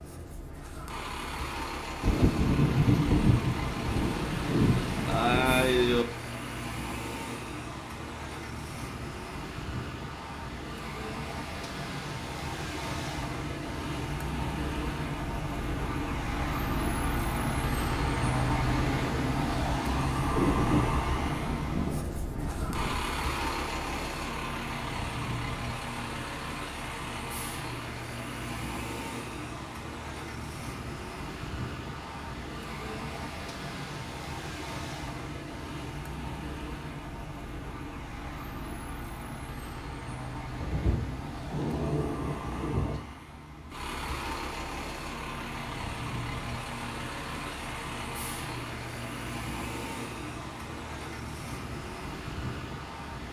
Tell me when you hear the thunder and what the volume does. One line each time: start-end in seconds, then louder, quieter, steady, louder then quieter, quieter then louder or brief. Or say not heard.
2.0-6.0 quieter then louder
20.2-23.1 brief
40.6-43.0 brief.